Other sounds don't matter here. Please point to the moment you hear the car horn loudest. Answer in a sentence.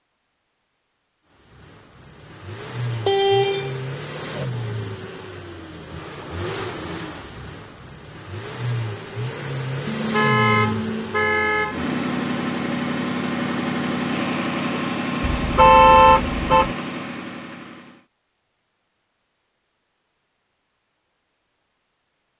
The volume of the car horn peaks at 16 seconds.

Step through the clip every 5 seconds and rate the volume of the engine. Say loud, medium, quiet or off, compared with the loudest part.
medium, medium, loud, loud, off.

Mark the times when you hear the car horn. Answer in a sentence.
The car horn can be heard from 2.9 to 4.5 s, from 9.8 to 11.9 s and from 15.2 to 16.8 s.